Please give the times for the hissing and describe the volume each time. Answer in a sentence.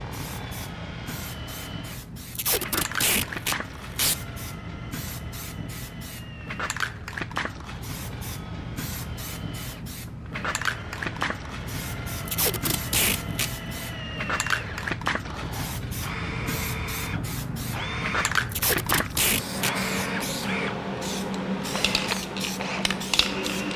The hissing can be heard from 0.0 to 23.7 s, getting louder.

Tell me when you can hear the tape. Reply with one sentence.
You can hear the tape from 2.4 to 4.2 s, from 12.2 to 13.5 s and from 18.5 to 19.8 s.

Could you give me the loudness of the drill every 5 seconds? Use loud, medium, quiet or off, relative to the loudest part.
medium, quiet, medium, loud, loud.